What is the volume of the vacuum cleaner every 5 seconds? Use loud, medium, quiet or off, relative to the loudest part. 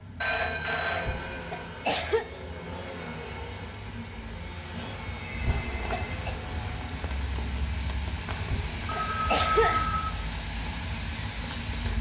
loud, loud, off.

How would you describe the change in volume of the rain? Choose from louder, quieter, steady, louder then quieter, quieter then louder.
louder.